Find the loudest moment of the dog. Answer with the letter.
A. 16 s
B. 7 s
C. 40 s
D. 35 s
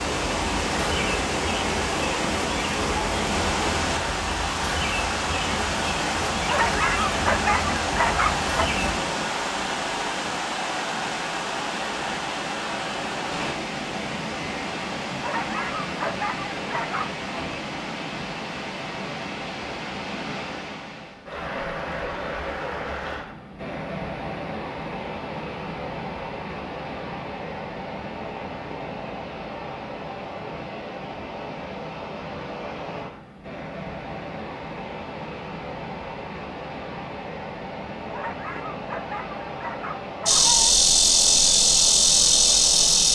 B.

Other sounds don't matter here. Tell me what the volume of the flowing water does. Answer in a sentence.
The loudness of the flowing water goes down.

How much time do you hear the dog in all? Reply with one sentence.
You can hear the dog for 7 seconds altogether.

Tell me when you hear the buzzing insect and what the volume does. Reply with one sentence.
The buzzing insect can be heard from 0.0 to 9.0 s, at a steady volume; and briefly from 40.2 to 43.1 s.